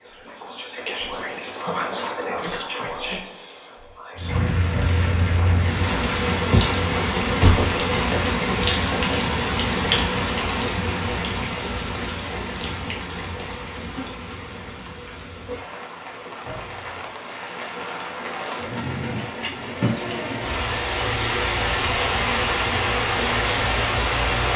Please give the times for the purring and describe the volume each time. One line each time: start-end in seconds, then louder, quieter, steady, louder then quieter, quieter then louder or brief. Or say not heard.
not heard.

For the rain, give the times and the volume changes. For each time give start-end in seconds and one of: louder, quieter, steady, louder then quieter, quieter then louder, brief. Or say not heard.
4.2-24.5 quieter then louder.